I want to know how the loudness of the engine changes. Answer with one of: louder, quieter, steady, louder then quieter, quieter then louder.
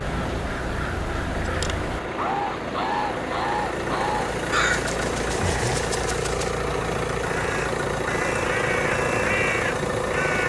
louder.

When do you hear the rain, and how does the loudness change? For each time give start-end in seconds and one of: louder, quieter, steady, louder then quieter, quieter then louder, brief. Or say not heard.
0.0-5.5 steady.